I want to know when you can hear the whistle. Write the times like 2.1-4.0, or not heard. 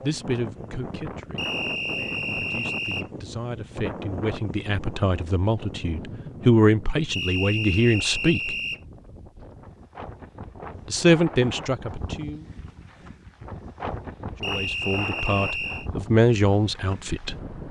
1.4-3.0, 7.1-8.8, 14.4-15.9.